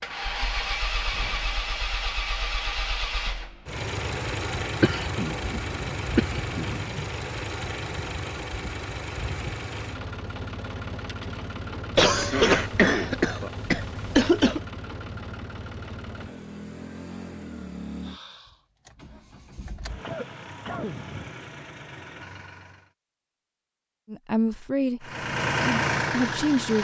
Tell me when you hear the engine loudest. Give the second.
26 s.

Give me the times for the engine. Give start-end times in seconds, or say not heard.
0.0-22.9, 25.0-26.8.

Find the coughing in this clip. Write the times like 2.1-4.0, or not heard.
4.8-7.0, 11.9-14.6, 19.9-21.4.